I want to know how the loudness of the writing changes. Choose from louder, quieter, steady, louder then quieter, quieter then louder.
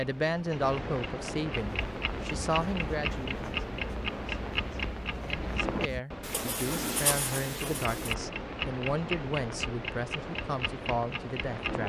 louder.